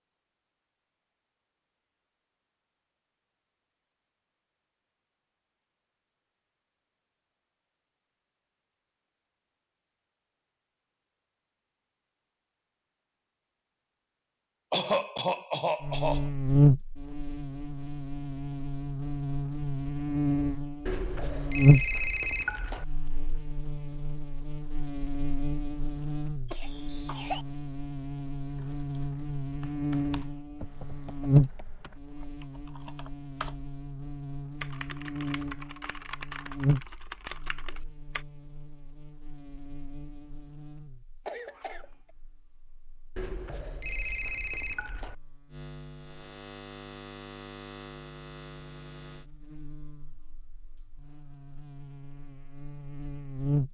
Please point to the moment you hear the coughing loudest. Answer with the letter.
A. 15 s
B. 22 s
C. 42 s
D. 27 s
A.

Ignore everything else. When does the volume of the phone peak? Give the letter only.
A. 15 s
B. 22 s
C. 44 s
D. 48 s
B.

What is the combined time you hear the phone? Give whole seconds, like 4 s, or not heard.
4 s.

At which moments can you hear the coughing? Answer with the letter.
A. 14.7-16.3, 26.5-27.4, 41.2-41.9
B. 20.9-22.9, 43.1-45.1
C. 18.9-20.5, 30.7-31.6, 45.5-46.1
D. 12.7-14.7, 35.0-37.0
A.